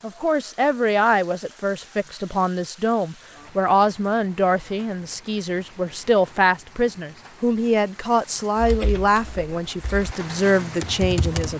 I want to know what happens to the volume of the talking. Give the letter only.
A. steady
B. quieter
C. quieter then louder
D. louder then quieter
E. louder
A.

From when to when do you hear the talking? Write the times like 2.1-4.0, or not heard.
0.0-11.5.